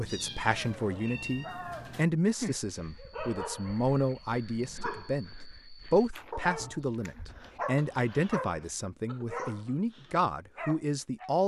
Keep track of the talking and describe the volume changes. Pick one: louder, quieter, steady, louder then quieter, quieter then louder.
steady.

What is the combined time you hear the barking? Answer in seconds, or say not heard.
11 s.